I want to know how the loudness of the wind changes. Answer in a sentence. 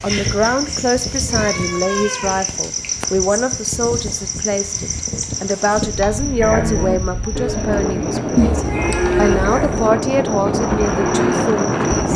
The loudness of the wind goes up.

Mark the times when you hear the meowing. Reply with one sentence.
The meowing can be heard from 1.2 to 3.0 s and from 8.3 to 9.9 s.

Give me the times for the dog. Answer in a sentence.
The dog can't be heard in this clip.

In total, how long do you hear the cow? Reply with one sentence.
You can hear the cow for 6 seconds altogether.